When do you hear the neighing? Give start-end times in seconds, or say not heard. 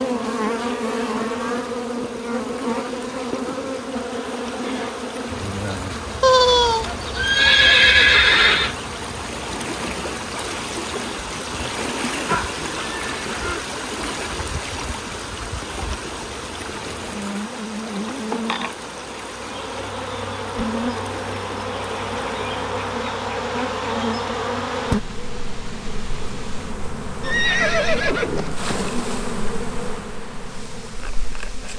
6.2-8.8, 12.2-13.7, 27.2-29.0.